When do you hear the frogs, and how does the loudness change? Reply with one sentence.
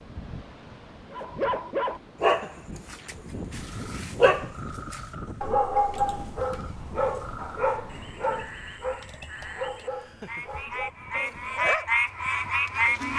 You can hear the frogs from 3.7 to 13.1 s, getting louder.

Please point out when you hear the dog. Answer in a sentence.
The dog can be heard from 1.1 to 13.1 s.